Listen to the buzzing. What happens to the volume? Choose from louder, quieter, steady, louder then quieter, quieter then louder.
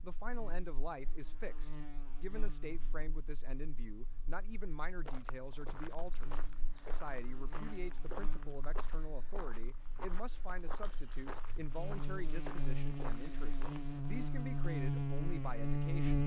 quieter then louder.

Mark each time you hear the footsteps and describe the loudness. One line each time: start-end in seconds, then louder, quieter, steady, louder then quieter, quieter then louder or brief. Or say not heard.
5.0-14.0 steady.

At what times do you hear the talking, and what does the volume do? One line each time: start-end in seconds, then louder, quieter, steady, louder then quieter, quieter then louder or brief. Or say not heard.
0.0-16.2 steady.